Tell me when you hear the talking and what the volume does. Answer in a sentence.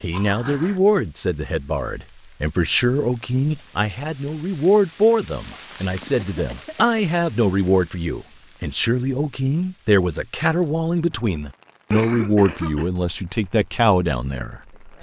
The talking can be heard from 0.0 to 14.9 s, at a steady volume.